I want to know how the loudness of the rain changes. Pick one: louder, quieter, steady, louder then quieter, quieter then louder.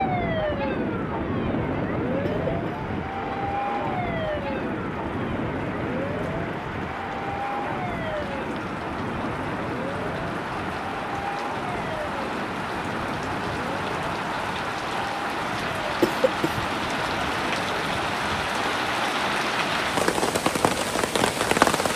louder.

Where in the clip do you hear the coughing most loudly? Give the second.
16 s.